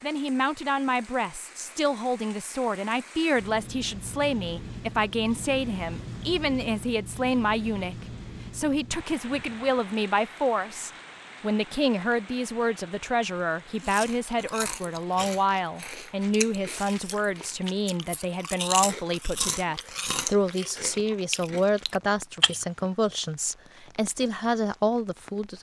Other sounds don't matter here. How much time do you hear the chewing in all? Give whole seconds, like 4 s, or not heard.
9 s.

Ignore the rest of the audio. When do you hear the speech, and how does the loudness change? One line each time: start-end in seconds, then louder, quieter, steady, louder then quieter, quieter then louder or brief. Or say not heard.
0.0-25.5 steady.